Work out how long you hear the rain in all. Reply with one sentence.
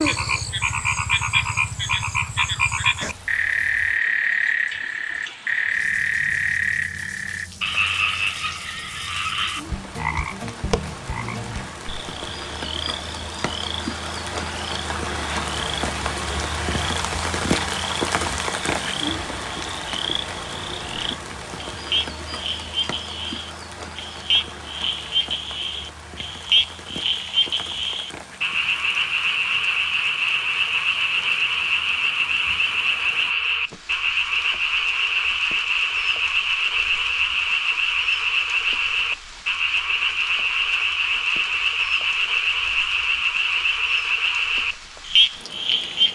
The rain can be heard for 46 seconds in total.